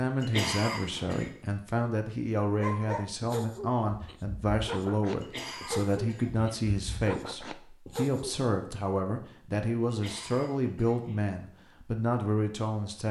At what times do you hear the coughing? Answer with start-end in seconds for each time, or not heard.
0.2-1.3, 5.2-6.6, 9.8-11.3.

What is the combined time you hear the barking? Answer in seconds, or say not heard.
6 s.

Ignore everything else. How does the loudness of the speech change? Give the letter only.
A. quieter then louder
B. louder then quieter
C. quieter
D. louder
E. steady
E.